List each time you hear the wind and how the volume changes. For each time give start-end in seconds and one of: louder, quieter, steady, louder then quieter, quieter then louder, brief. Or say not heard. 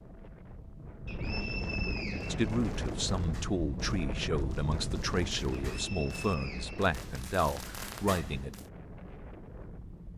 0.0-10.1 quieter.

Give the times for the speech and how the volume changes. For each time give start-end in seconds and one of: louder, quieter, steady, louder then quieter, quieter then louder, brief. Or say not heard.
2.3-8.6 steady.